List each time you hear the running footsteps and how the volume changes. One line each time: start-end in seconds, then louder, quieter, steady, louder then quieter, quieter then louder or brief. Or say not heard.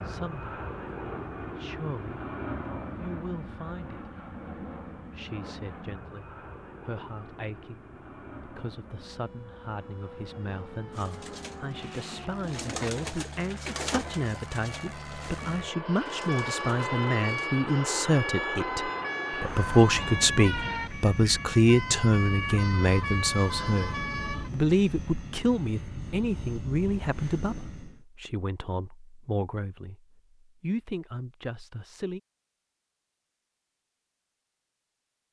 not heard.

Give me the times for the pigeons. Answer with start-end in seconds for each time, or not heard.
10.9-17.5.